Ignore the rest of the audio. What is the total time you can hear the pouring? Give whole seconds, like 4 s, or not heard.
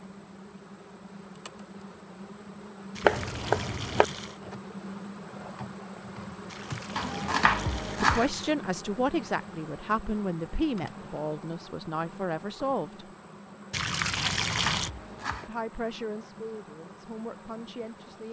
5 s.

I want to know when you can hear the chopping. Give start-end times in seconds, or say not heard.
3.0-4.0, 7.0-8.3, 14.3-15.5.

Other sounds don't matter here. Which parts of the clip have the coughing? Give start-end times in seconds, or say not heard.
not heard.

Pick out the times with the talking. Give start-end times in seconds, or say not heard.
8.0-13.1, 15.4-18.2.